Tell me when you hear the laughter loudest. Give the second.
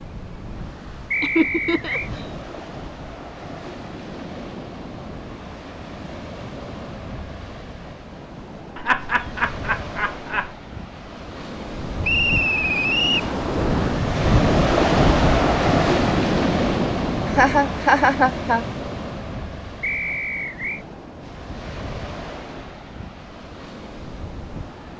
18 s.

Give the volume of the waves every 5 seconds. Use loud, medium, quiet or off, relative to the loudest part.
quiet, quiet, loud, loud, quiet.